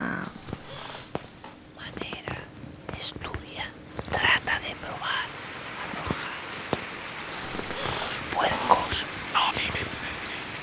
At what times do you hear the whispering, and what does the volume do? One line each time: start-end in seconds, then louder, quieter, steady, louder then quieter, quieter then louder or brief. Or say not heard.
1.8-6.5 louder then quieter
8.0-10.4 brief.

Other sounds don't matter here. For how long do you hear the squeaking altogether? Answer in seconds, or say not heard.
3 s.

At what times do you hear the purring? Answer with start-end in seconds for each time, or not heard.
0.0-10.5.